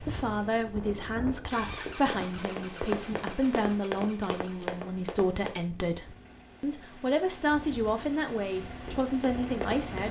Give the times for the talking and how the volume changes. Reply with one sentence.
You can hear the talking from 0.0 to 10.0 s, at a steady volume.